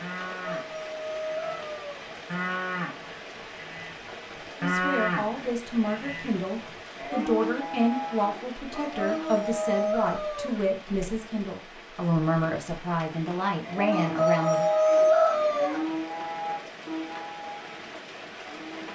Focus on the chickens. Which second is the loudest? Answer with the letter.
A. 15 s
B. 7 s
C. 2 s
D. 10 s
A.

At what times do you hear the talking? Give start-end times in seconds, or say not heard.
4.5-14.7.